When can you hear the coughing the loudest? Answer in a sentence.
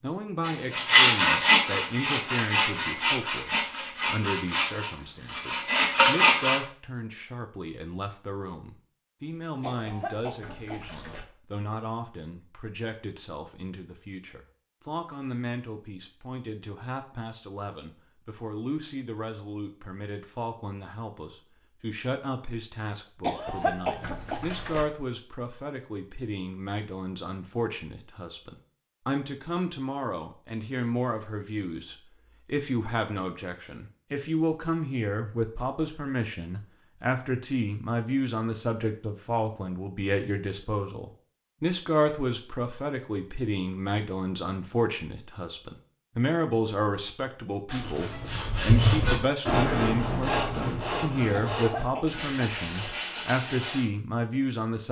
The volume of the coughing peaks at 24 seconds.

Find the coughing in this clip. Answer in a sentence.
You can hear the coughing from 9.6 to 11.2 s, from 23.2 to 24.9 s and from 51.3 to 53.0 s.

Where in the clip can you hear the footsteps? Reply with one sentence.
You can't hear the footsteps here.